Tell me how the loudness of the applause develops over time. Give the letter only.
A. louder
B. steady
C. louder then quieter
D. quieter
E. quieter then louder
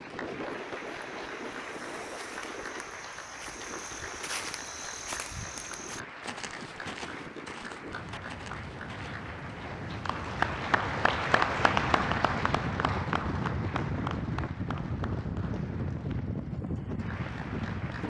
C.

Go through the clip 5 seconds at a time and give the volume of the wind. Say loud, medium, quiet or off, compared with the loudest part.
medium, medium, loud, loud.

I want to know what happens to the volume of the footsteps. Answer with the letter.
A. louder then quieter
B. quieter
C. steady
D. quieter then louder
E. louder
A.